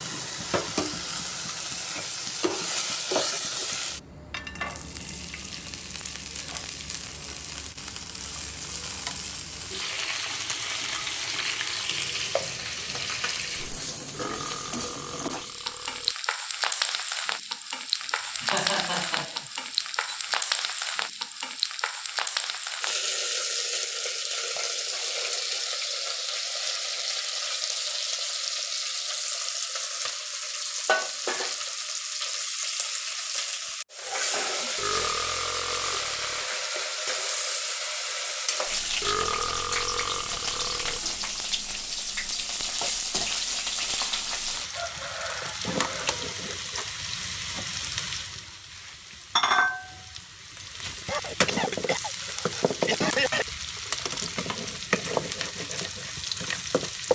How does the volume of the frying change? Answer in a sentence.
The volume of the frying stays about the same.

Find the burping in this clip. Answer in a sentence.
You can hear the burping from 14.1 to 16.1 s, from 34.8 to 36.5 s and from 39.0 to 41.0 s.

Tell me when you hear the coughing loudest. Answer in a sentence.
The volume of the coughing peaks at 53 seconds.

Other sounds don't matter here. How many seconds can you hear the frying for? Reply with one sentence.
You can hear the frying for 57 seconds altogether.